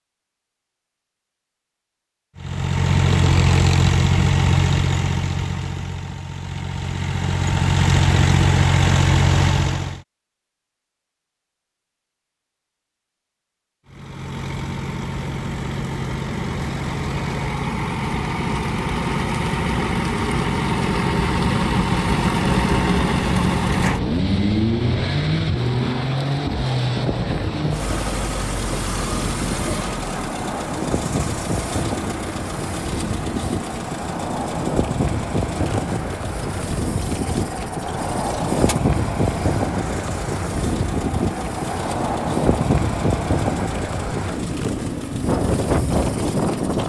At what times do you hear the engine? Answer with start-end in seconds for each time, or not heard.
2.4-10.0, 13.8-46.8.